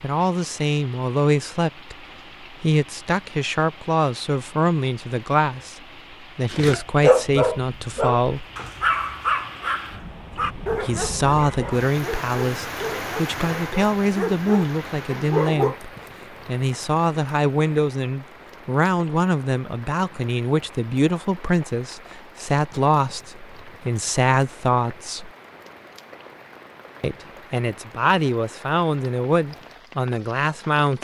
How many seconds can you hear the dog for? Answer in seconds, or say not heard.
9 s.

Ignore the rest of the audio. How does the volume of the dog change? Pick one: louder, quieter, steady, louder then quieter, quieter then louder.
quieter.